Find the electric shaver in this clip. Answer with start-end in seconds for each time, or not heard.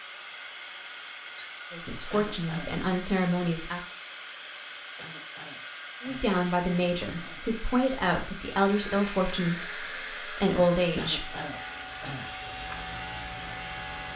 8.7-14.1.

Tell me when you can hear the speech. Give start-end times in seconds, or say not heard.
1.7-3.8, 6.0-11.3.